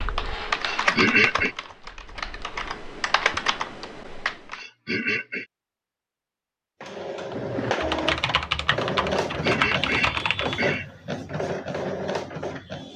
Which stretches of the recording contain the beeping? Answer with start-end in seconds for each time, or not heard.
not heard.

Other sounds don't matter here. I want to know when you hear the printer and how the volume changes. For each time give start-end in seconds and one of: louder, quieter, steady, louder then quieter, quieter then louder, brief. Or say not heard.
6.8-12.9 steady.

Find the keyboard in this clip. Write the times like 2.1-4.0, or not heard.
0.0-4.6, 7.3-10.8.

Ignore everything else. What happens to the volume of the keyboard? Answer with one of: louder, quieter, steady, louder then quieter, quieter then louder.
quieter then louder.